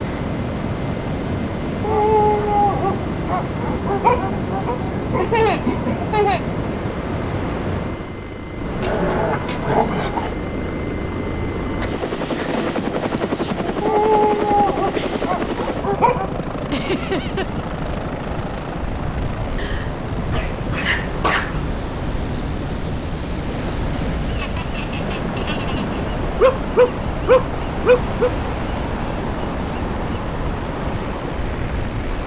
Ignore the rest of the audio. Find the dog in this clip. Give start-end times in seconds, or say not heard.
1.8-4.8, 8.8-10.3, 13.8-16.4, 19.6-21.6, 26.4-28.3.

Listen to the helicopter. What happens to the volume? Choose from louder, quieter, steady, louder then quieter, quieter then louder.
louder then quieter.